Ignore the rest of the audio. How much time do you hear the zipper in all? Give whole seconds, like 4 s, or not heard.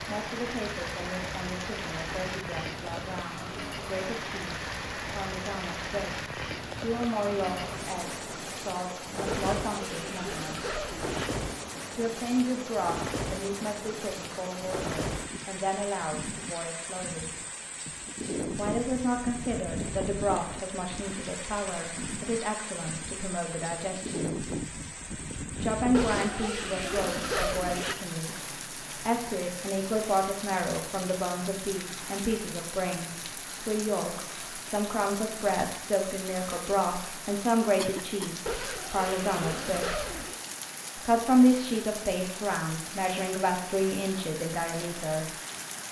6 s.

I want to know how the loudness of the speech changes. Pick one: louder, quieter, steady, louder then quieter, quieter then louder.
louder.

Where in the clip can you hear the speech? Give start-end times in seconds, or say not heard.
0.0-10.6, 11.9-17.3, 18.5-24.4, 25.6-40.0, 41.0-45.2.